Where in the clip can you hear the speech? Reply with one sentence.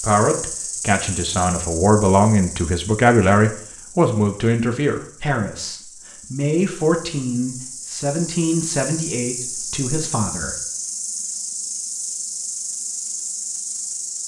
The speech can be heard from 0.0 to 10.6 s.